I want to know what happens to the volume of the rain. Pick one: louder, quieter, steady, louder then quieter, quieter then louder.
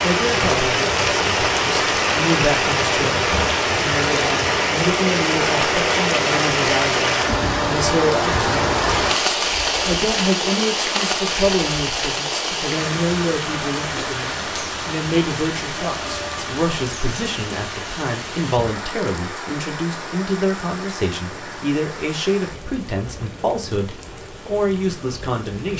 quieter.